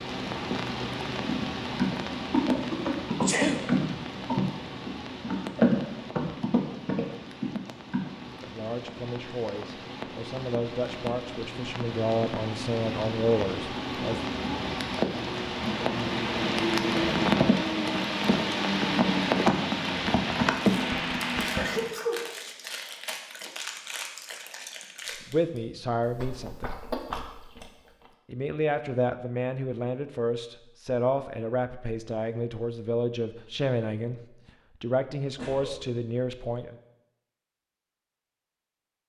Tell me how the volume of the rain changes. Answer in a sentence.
The volume of the rain goes down, then up.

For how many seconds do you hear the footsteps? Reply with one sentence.
The footsteps can't be heard in this clip.